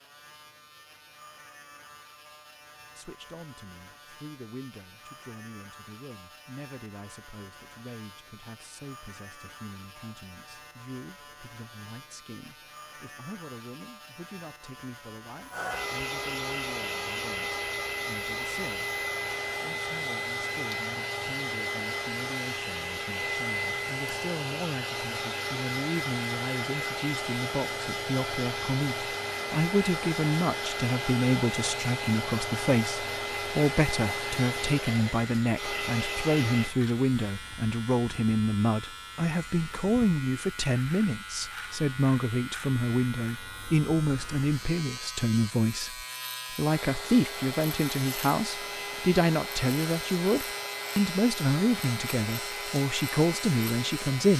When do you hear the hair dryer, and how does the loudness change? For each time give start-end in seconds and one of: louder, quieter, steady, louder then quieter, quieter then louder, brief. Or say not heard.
15.5-36.8 steady
46.6-54.3 steady.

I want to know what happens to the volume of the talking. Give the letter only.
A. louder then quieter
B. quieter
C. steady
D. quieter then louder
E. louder
E.